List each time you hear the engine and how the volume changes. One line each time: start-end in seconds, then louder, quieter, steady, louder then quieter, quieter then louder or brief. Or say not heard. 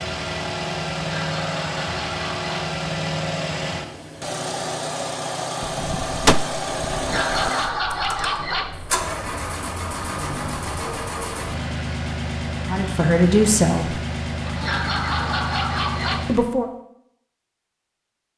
0.0-16.5 steady.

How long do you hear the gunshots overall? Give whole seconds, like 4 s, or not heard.
2 s.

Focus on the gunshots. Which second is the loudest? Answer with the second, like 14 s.
6 s.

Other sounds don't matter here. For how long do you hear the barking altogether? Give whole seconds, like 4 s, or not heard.
5 s.